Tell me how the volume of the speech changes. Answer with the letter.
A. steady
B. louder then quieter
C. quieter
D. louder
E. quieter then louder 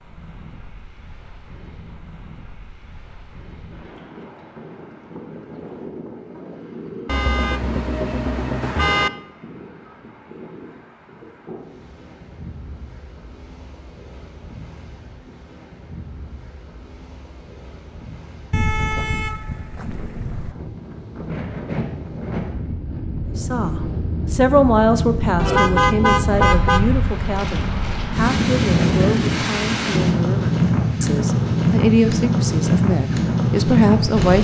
E.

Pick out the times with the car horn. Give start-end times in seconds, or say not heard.
7.0-9.1, 18.5-20.6, 25.4-26.8.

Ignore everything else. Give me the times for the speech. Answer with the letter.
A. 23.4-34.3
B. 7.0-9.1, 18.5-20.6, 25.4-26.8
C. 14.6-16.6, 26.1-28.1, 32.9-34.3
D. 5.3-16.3
A.